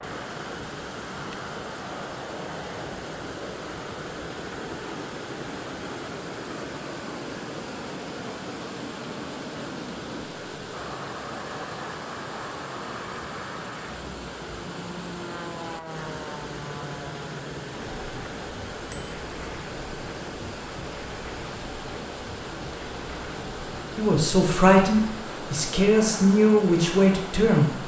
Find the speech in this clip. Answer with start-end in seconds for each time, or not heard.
23.9-27.8.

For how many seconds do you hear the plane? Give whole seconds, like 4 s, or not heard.
28 s.